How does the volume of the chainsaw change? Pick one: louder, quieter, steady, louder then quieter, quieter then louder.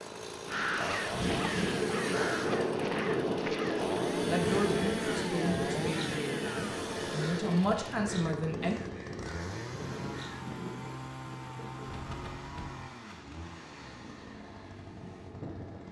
quieter.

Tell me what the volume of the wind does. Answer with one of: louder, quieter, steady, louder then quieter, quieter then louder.
quieter.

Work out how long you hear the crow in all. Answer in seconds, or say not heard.
10 s.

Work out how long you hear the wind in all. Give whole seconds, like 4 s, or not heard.
16 s.